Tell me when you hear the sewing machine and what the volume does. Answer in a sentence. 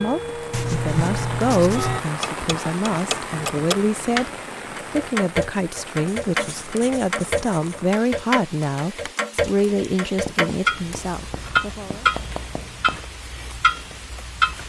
The sewing machine can't be heard in this clip.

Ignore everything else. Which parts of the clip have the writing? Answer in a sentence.
The writing can be heard from 0.5 to 2.0 s, from 6.0 to 7.8 s and from 10.2 to 13.0 s.